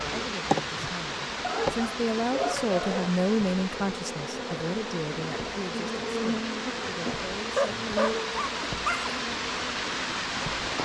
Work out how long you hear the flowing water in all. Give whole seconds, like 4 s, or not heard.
11 s.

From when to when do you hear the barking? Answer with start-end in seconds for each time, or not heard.
1.4-3.1, 7.5-9.2.